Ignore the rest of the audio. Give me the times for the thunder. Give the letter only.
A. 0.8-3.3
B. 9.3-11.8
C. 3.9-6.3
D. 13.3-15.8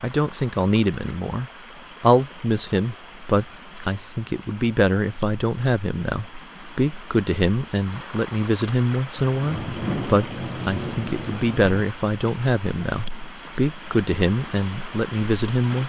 B.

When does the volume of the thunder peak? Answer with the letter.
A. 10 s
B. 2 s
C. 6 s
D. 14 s
A.